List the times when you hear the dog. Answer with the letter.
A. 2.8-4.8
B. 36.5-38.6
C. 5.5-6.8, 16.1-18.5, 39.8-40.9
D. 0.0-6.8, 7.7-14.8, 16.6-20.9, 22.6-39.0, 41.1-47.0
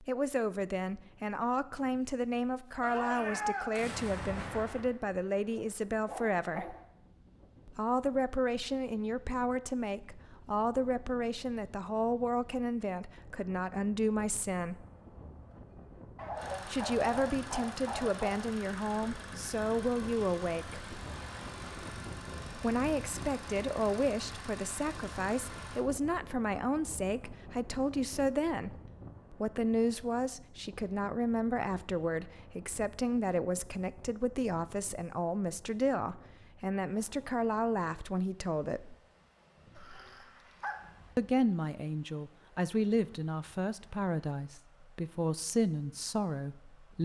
C.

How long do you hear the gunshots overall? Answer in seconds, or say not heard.
2 s.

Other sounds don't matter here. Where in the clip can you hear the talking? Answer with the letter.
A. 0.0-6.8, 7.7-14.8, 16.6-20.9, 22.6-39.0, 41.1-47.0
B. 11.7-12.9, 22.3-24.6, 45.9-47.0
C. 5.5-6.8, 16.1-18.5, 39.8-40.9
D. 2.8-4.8
A.